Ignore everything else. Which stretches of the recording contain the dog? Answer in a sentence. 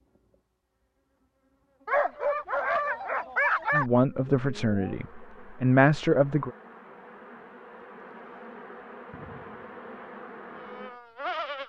The dog can be heard from 1.9 to 3.9 s.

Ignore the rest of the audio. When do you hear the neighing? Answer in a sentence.
You can't hear the neighing here.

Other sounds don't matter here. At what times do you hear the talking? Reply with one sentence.
The talking can be heard from 3.7 to 6.5 s.